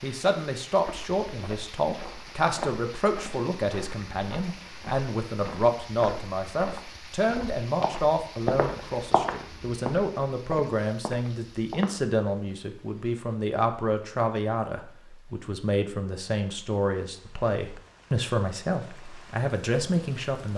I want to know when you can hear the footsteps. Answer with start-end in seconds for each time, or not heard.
0.8-12.1.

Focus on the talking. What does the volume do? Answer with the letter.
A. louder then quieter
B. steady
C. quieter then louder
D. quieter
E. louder
B.